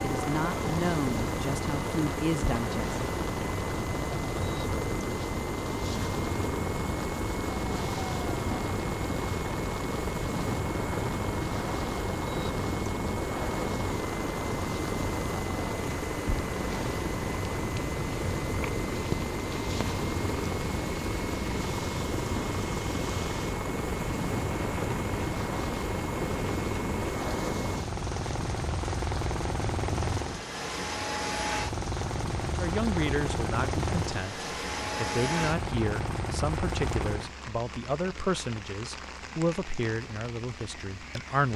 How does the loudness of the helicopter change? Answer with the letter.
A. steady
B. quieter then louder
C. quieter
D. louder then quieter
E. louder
A.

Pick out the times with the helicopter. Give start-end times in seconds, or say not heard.
0.0-37.4.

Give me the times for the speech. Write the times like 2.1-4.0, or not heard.
0.0-3.0, 32.5-41.5.